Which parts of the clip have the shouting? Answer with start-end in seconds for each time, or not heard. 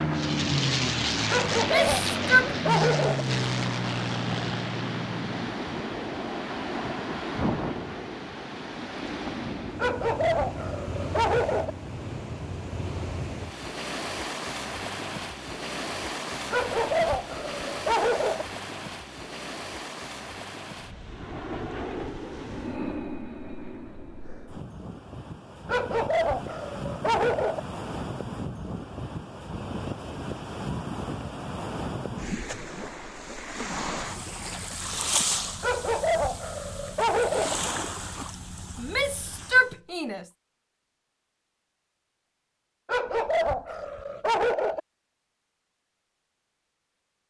1.6-2.5, 38.8-40.2.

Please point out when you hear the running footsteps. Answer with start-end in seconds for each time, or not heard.
not heard.